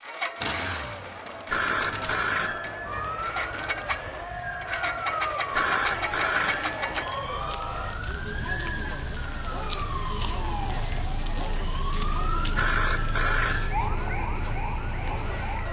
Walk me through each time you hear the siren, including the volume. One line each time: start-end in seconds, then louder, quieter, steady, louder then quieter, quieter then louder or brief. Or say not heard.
2.9-15.6 steady.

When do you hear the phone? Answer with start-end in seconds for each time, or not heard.
1.4-3.1, 5.5-7.2, 12.6-13.8.